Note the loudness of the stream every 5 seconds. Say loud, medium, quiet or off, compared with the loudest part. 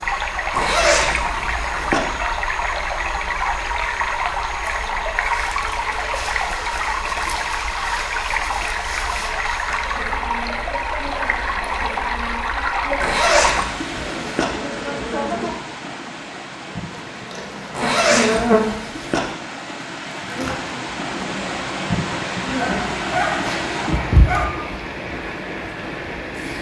loud, loud, loud, medium, loud, medium.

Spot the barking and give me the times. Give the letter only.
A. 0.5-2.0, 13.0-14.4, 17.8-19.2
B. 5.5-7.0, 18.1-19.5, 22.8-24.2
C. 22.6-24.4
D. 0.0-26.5
C.